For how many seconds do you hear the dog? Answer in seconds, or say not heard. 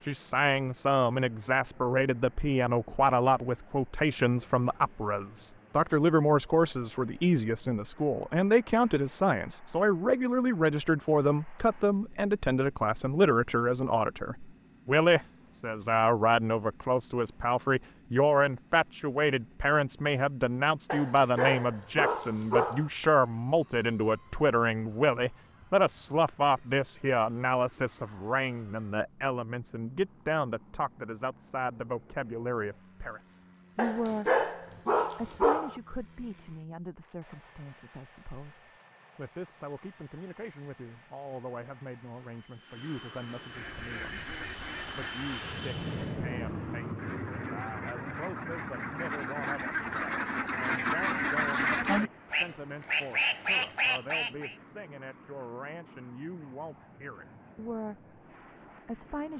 4 s.